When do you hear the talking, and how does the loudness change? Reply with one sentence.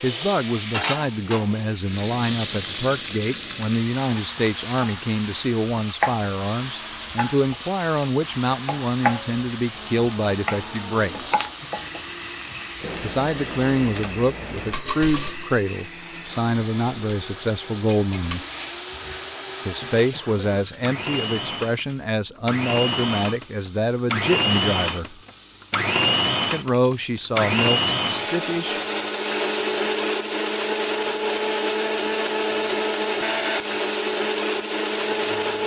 You can hear the talking from 0.0 to 11.4 s, at a steady volume; from 13.0 to 18.4 s, at a steady volume; from 19.6 to 25.1 s, at a steady volume; and briefly from 26.5 to 28.8 s.